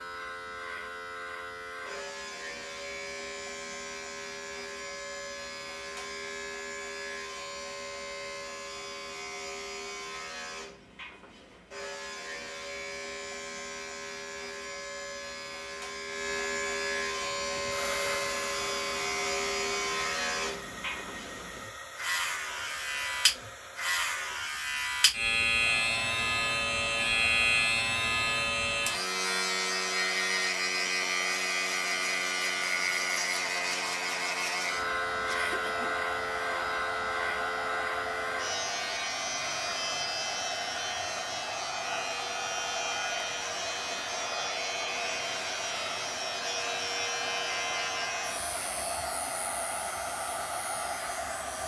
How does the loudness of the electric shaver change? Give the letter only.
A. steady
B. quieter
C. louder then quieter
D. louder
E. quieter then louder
C.